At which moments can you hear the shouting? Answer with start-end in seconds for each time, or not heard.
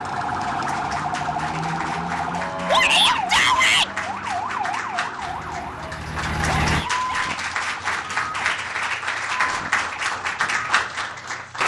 2.6-3.9, 6.7-7.3.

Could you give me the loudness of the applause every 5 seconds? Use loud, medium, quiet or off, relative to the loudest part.
medium, loud, loud.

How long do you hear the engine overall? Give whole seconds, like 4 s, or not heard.
2 s.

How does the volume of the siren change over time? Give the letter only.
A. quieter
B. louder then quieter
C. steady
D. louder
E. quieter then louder
A.